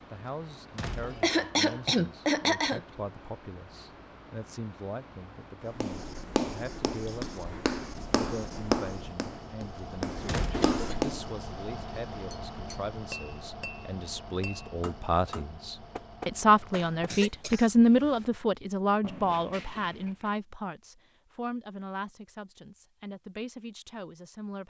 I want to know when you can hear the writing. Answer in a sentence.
You can hear the writing from 5.7 to 11.3 s.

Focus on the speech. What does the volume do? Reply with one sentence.
The loudness of the speech goes up, then down.